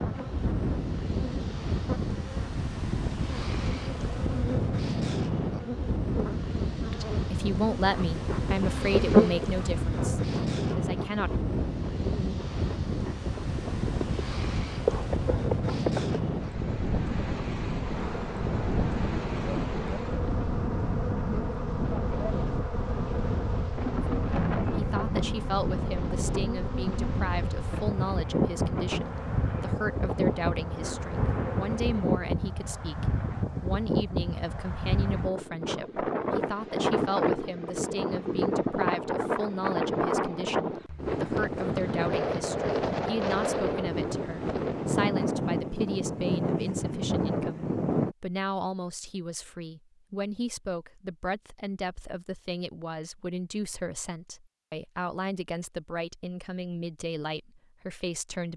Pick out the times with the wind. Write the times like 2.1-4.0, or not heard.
0.0-48.1.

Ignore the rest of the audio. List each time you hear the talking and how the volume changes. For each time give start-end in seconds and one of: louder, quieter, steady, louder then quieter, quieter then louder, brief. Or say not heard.
6.9-11.3 quieter
24.1-58.5 steady.